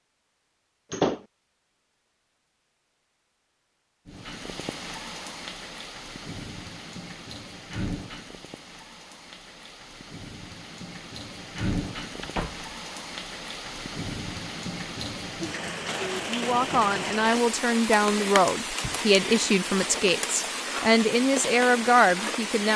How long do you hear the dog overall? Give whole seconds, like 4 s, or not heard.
not heard.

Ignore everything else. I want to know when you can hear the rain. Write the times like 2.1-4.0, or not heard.
4.0-22.7.